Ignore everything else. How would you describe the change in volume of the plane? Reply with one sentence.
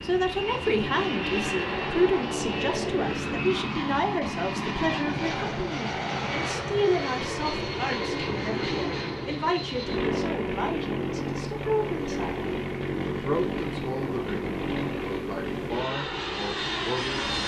The volume of the plane stays about the same.